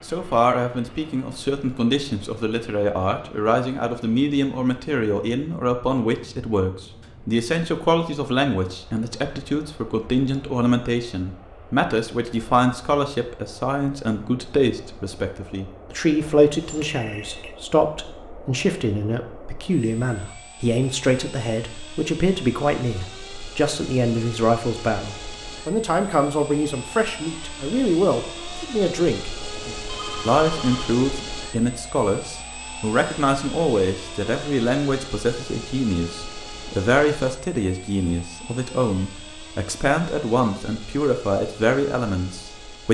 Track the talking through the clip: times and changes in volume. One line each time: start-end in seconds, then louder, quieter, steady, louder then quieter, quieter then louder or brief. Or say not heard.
0.1-42.9 steady.